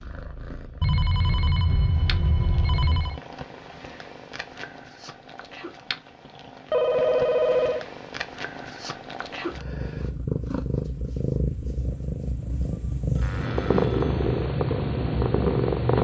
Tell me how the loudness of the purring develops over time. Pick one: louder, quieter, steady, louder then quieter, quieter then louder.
louder.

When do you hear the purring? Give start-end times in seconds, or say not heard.
0.0-15.9.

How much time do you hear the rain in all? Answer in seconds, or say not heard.
not heard.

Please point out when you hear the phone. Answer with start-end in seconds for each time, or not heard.
0.8-3.2, 6.7-7.8, 13.2-14.2.